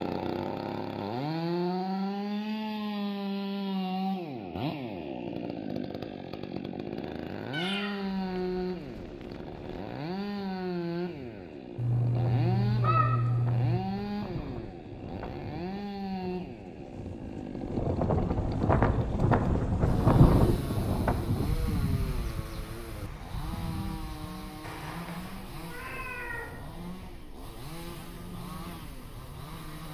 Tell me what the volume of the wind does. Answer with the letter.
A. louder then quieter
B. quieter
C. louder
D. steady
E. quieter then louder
A.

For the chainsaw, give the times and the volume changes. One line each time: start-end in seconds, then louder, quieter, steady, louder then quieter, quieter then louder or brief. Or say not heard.
0.0-29.8 quieter.